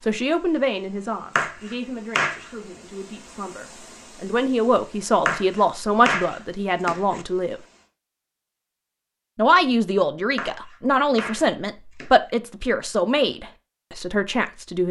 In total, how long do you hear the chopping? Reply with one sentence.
The chopping can be heard for 5 seconds in total.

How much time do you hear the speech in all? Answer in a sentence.
You can hear the speech for 13 seconds altogether.